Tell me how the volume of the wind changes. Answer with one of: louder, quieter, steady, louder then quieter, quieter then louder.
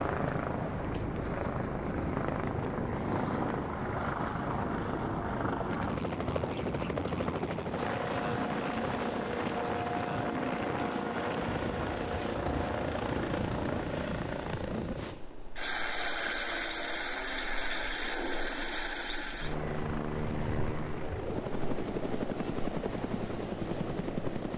quieter.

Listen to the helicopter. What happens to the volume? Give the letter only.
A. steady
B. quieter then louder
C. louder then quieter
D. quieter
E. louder
A.